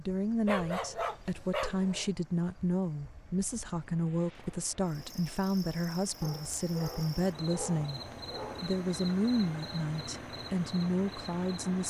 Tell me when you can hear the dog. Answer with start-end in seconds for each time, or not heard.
0.5-2.1, 6.2-8.8.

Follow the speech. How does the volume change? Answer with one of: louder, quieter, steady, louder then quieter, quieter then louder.
steady.